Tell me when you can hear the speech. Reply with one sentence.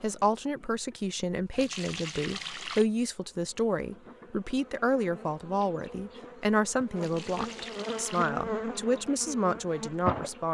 You can hear the speech from 0.0 to 10.5 s.